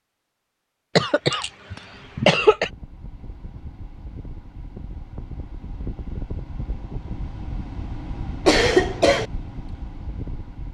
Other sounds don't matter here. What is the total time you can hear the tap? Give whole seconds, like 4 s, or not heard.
not heard.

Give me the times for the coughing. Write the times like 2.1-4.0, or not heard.
0.9-2.7, 8.4-9.2.